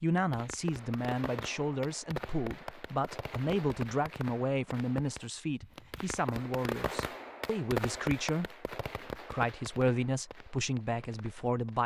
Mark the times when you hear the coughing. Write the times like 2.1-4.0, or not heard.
not heard.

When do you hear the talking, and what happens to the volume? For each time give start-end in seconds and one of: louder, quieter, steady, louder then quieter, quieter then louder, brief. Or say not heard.
0.0-11.8 steady.